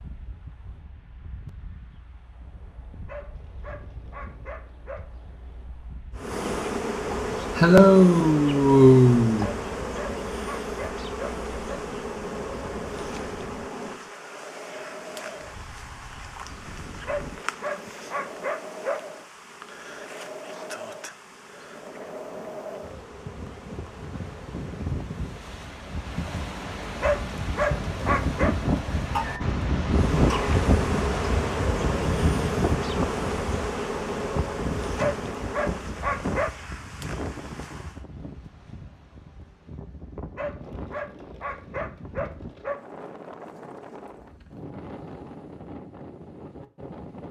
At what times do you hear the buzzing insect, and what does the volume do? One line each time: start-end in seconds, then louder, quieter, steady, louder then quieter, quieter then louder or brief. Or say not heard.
6.2-25.6 quieter
29.9-38.0 quieter.